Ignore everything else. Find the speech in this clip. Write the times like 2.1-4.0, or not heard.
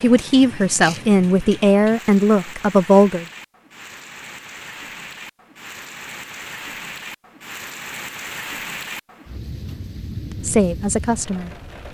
0.0-3.2, 10.4-11.6.